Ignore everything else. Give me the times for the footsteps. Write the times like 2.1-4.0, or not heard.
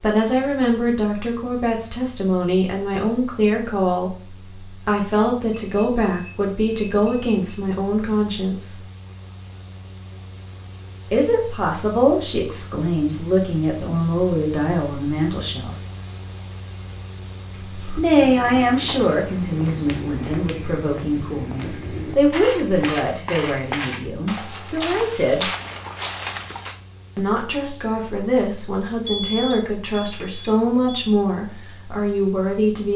17.5-26.8.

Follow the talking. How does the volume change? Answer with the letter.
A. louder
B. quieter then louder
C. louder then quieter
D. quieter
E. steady
E.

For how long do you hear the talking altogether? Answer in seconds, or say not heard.
27 s.